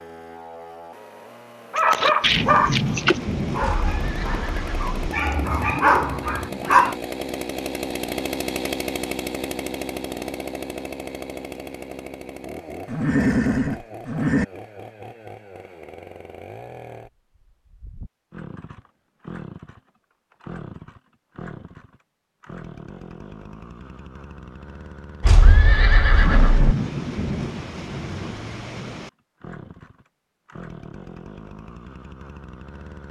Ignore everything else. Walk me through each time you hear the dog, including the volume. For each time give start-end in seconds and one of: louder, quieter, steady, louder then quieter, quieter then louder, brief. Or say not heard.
1.7-7.0 quieter then louder.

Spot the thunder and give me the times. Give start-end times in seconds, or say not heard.
2.2-5.2, 26.1-29.1.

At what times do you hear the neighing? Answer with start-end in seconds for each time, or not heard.
3.6-5.0, 12.8-14.4, 25.2-26.8.